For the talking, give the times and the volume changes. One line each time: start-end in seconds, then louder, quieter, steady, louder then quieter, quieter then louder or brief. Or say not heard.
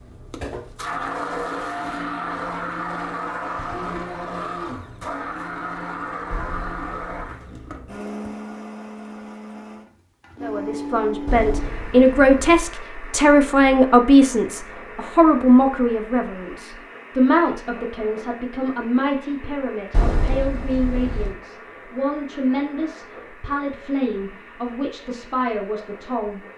10.4-26.4 quieter.